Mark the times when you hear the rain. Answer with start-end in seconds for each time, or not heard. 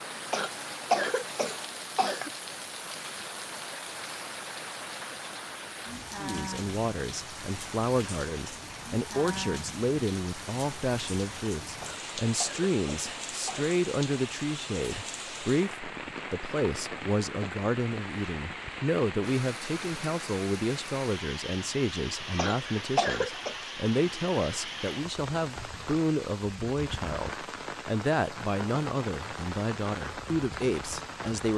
0.0-31.5.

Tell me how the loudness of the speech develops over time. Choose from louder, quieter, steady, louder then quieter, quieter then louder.
steady.